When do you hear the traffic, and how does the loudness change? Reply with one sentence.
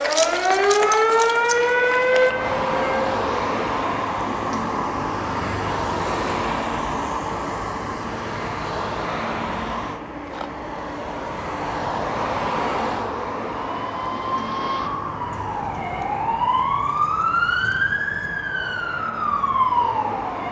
The traffic can be heard from 0.1 to 20.4 s, getting quieter.